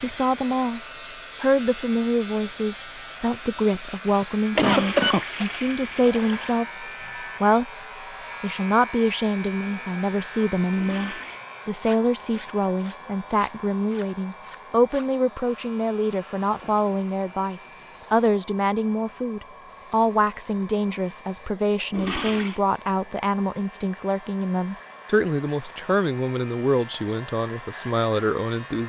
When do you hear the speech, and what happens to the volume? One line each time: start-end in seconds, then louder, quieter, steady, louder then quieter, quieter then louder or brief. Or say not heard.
0.0-0.8 brief
1.4-7.7 steady
8.4-28.8 steady.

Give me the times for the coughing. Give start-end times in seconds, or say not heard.
4.0-5.7.